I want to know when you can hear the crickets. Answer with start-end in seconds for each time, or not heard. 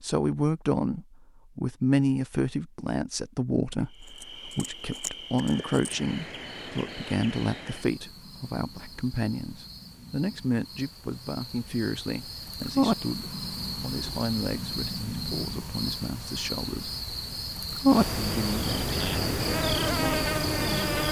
3.9-21.0.